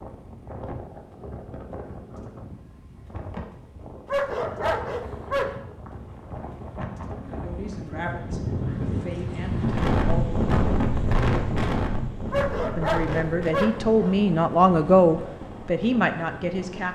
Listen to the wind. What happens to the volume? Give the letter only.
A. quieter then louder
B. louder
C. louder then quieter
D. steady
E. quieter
C.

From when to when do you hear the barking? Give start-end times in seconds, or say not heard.
4.0-5.6, 12.3-14.2.